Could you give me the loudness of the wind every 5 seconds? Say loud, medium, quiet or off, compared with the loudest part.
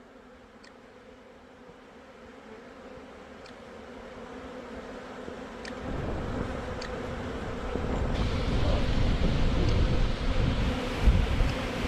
off, loud, loud.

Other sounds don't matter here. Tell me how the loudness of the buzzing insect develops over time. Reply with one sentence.
The loudness of the buzzing insect goes up.